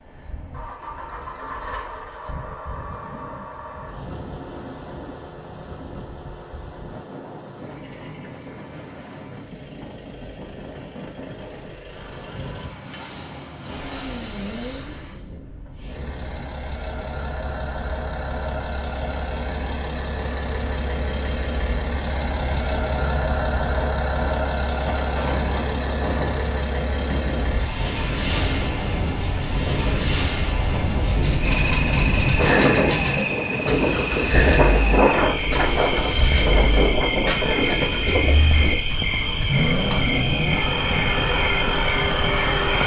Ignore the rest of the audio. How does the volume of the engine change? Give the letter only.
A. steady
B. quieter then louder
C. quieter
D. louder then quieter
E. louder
E.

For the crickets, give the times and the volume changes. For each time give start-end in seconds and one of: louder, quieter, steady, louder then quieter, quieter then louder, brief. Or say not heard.
17.1-42.8 steady.